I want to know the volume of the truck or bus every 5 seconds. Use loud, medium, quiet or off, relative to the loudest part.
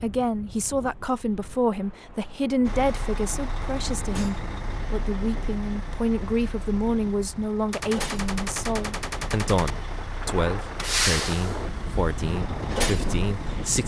medium, medium, loud.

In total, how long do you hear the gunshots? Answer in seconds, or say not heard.
2 s.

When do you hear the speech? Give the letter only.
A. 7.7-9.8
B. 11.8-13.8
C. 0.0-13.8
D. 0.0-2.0
C.